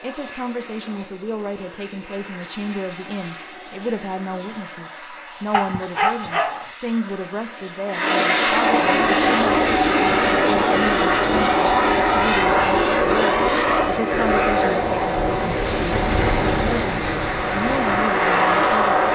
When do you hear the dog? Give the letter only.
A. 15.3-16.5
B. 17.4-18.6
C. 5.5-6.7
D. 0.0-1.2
C.